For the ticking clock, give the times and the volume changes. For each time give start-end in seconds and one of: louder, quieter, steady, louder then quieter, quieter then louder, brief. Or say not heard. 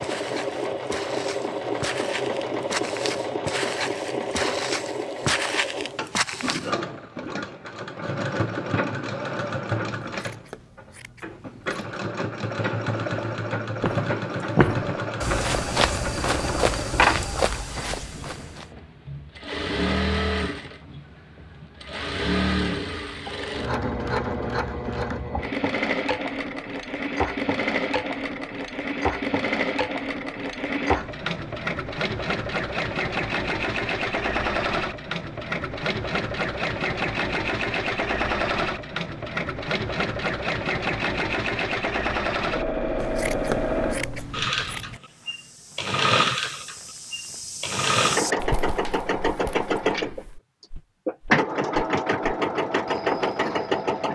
not heard.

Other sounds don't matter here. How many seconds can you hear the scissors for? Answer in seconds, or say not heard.
4 s.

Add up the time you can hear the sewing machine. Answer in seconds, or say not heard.
54 s.